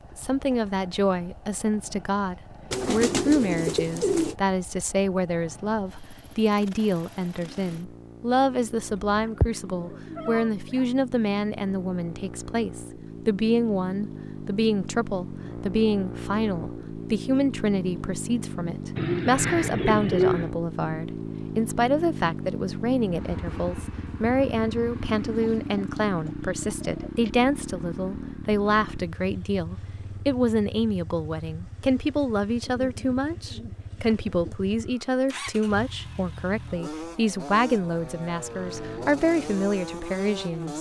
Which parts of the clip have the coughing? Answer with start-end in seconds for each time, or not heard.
not heard.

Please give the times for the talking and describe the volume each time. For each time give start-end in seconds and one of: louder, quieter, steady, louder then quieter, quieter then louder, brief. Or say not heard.
0.1-40.7 steady.